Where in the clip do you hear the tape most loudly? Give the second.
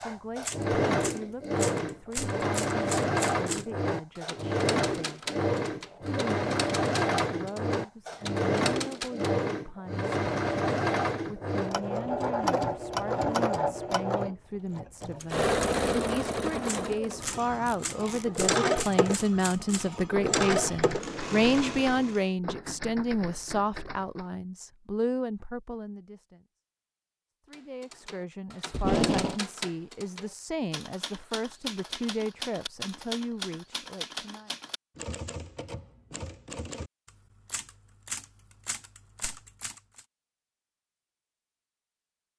29 s.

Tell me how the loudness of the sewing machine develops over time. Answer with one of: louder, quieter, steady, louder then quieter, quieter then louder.
steady.